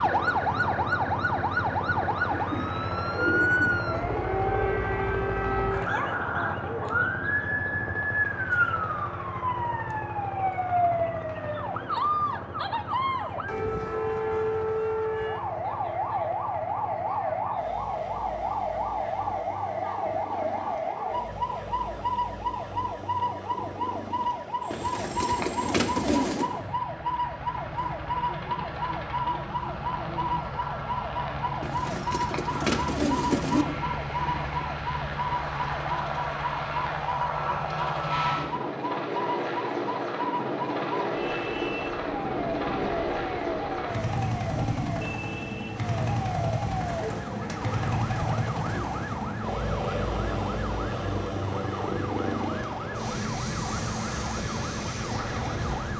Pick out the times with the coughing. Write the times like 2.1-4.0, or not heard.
not heard.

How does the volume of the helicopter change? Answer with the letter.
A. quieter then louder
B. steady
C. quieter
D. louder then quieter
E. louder
A.